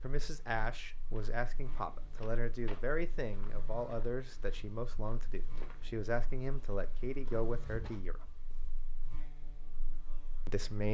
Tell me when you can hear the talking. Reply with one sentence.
The talking can be heard from 0.0 to 8.2 s and from 10.4 to 10.9 s.